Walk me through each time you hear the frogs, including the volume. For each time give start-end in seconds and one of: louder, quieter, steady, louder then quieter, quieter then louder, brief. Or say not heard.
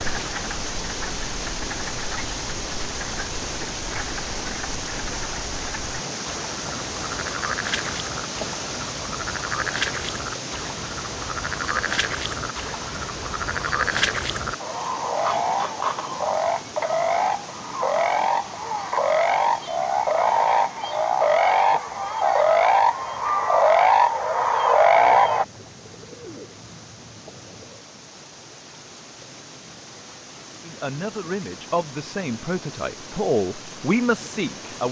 0.0-25.4 louder.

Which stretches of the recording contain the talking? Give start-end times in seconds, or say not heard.
30.6-34.8.